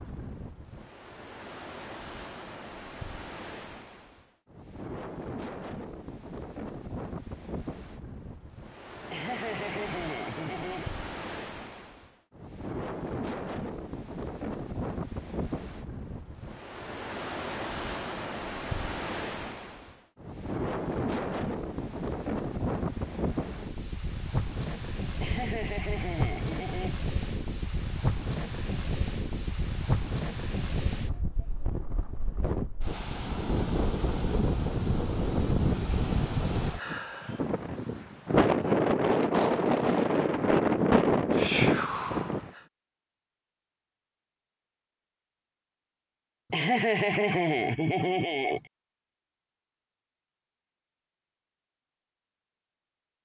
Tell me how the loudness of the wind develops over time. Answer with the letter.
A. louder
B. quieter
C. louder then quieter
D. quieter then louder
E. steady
A.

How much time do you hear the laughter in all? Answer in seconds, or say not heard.
6 s.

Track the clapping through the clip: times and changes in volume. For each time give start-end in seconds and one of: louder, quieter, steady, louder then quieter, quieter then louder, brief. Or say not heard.
not heard.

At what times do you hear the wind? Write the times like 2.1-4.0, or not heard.
0.0-42.5.